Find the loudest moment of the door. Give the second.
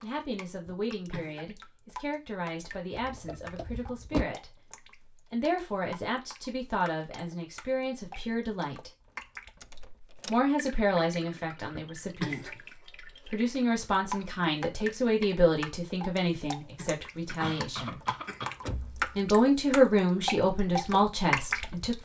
4 s.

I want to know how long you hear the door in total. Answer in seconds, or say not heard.
3 s.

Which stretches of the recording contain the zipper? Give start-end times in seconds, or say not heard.
not heard.